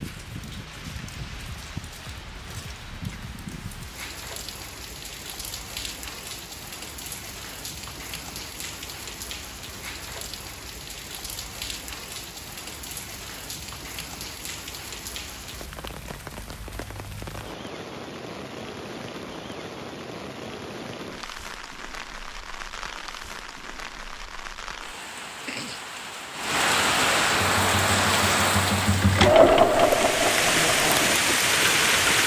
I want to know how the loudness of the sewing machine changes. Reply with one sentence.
The volume of the sewing machine goes up, then down.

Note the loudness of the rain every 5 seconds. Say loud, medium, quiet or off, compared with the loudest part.
quiet, quiet, quiet, quiet, quiet, loud, loud.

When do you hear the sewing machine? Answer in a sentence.
You can hear the sewing machine from 27.4 to 32.2 s.